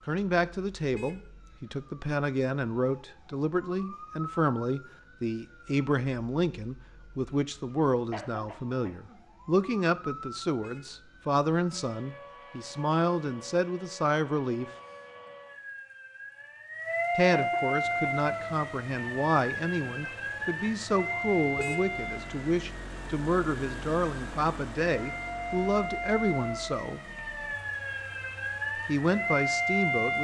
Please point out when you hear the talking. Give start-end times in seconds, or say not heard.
0.1-14.7, 17.1-27.1, 28.9-30.2.